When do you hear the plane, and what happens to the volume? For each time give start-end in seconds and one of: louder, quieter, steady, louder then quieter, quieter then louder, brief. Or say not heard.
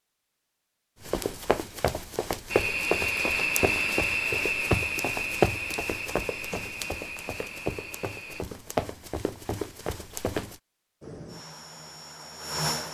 2.5-8.4 quieter
11.0-12.8 brief.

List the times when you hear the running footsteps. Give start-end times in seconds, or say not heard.
1.0-10.6.